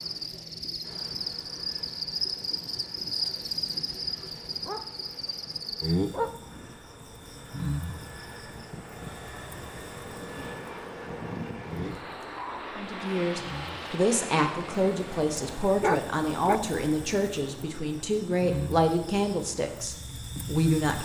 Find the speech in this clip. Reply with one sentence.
You can hear the speech from 12.8 to 21.0 s.